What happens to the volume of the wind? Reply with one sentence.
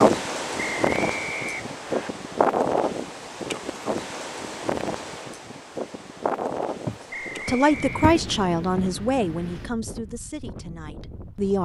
The volume of the wind goes down.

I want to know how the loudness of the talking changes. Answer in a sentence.
The volume of the talking goes down.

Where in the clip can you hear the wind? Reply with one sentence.
You can hear the wind from 0.0 to 11.5 s.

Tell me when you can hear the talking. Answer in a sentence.
You can hear the talking from 7.5 to 11.5 s.